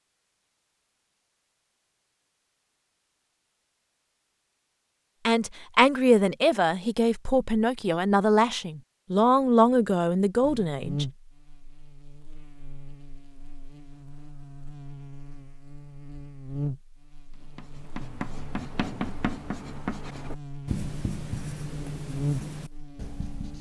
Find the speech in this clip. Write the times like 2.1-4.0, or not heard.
5.2-11.1.